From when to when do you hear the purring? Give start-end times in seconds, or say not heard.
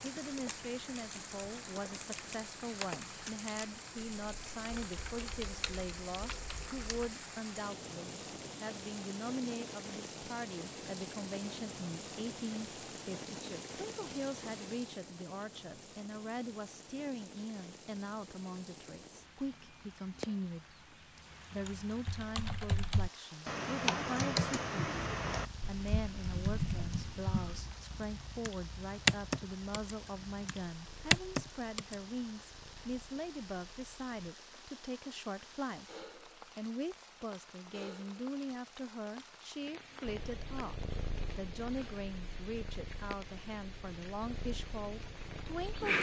25.1-34.3, 40.0-45.9.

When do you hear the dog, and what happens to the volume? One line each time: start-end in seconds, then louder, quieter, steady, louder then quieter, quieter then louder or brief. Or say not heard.
not heard.